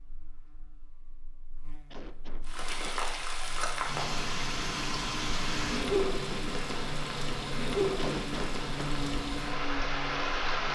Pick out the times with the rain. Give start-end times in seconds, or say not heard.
2.5-10.6.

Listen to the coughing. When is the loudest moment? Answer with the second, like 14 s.
8 s.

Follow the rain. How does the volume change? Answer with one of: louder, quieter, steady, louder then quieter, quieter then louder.
steady.